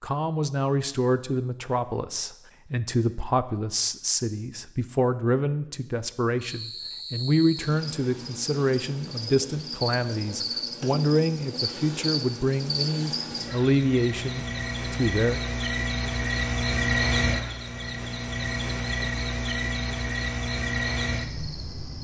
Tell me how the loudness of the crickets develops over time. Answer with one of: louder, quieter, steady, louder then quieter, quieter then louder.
louder.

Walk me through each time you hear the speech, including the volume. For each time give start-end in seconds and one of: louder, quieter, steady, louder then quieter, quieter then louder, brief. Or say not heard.
0.0-15.4 steady.